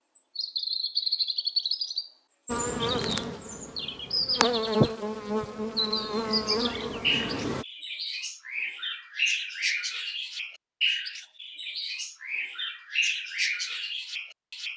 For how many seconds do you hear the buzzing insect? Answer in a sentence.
You can hear the buzzing insect for 5 seconds altogether.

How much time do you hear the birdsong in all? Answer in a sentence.
The birdsong can be heard for 14 seconds in total.